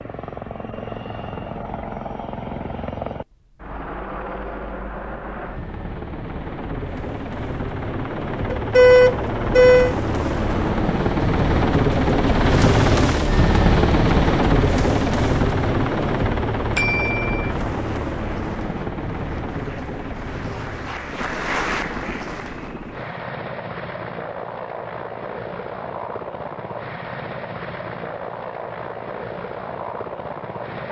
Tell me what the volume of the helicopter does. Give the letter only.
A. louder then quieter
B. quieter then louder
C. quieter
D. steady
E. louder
A.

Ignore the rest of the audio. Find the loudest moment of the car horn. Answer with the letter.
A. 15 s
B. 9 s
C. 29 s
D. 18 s
B.